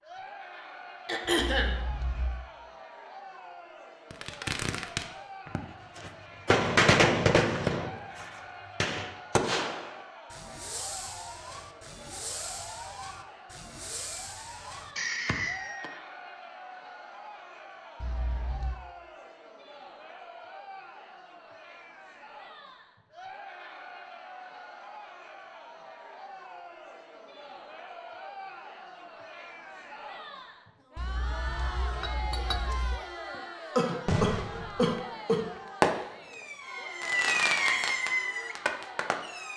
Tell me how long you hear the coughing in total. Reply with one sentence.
You can hear the coughing for 2 seconds altogether.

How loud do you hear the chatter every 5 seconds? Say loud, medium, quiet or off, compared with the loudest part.
medium, medium, medium, medium, medium, medium, loud, medium.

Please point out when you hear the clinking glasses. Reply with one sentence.
You can hear the clinking glasses from 1.4 to 2.5 s, from 18.0 to 18.8 s and from 30.9 to 33.0 s.